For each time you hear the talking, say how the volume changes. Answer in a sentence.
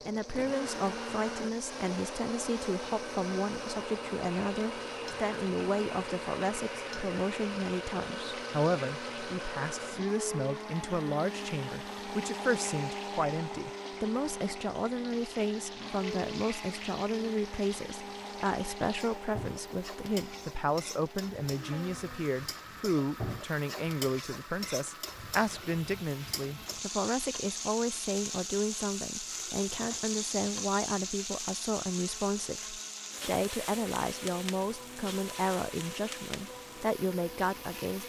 The talking can be heard from 0.1 to 38.0 s, at a steady volume.